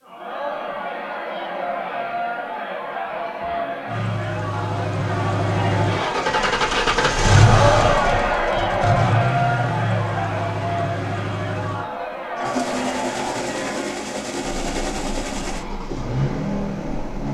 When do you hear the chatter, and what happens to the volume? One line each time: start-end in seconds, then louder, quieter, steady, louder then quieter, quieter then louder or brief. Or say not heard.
0.0-17.2 louder then quieter.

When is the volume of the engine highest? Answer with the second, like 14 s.
7 s.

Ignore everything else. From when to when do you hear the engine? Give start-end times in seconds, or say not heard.
3.9-17.2.